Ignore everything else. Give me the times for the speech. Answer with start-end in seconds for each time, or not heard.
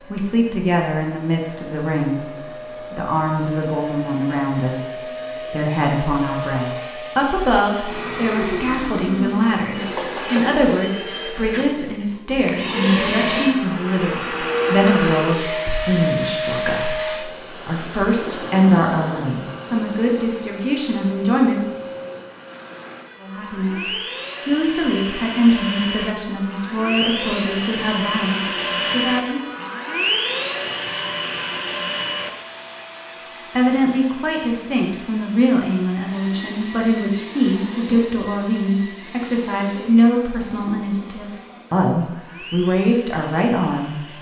0.1-2.2, 2.9-21.7, 23.2-29.4, 33.5-44.0.